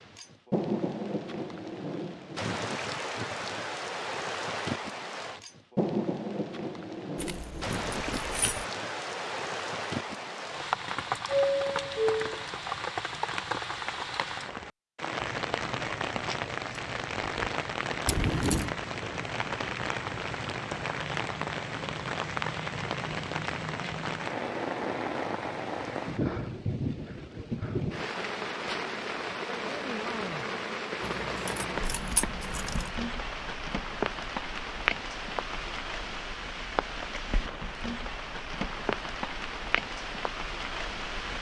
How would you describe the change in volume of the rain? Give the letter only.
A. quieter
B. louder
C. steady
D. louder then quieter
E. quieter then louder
C.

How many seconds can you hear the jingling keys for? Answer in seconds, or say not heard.
4 s.